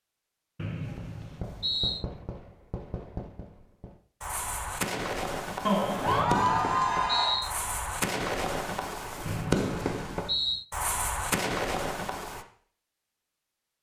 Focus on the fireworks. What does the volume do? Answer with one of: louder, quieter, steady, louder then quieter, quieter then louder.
louder.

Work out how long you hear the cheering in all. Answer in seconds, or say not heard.
2 s.